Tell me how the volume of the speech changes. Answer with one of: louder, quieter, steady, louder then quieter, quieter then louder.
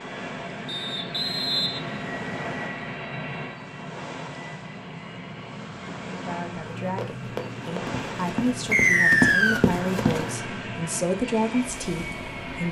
louder.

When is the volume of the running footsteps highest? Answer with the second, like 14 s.
9 s.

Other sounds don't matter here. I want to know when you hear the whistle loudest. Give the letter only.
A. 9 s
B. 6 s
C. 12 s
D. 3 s
A.